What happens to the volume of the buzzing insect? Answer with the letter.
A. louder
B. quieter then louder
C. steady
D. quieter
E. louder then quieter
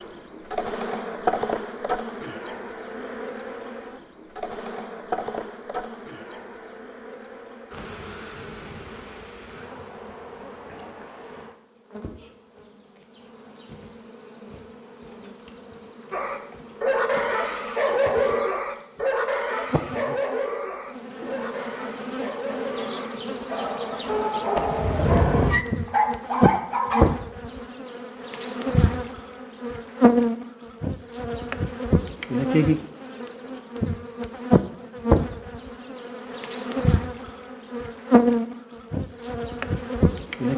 B.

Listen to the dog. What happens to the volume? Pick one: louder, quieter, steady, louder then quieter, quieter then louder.
quieter then louder.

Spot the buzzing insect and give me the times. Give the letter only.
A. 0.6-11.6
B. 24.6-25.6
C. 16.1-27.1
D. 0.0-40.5
D.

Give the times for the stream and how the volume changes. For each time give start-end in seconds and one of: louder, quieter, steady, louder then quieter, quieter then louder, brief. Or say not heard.
not heard.